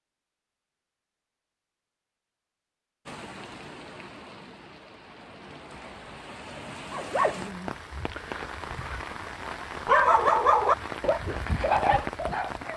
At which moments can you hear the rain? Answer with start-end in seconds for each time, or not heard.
3.0-12.7.